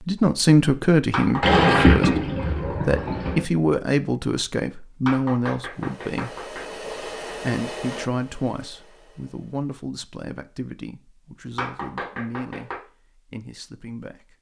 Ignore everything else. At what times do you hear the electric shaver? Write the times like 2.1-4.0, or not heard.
not heard.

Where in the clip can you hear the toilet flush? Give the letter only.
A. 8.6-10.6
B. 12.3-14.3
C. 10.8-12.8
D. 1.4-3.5
D.